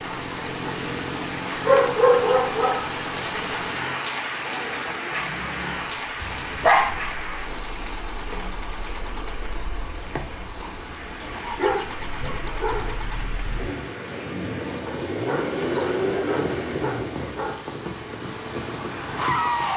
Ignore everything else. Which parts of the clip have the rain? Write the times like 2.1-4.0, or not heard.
0.0-19.7.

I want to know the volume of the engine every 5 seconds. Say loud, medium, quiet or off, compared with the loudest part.
medium, quiet, medium, loud.